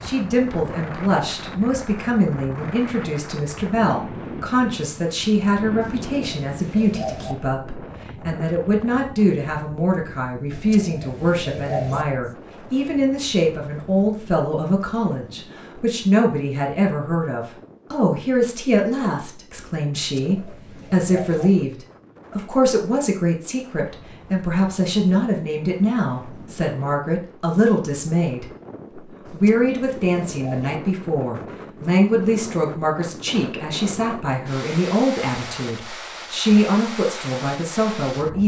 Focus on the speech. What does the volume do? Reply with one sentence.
The volume of the speech stays about the same.